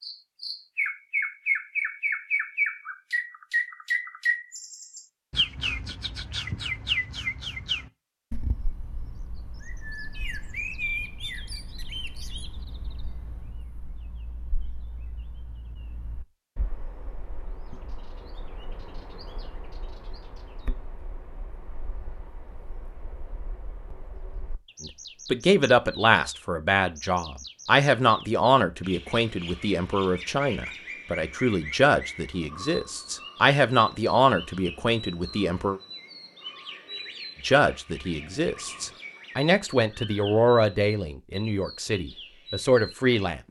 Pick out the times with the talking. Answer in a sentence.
The talking can be heard from 24.8 to 35.8 s and from 37.4 to 43.4 s.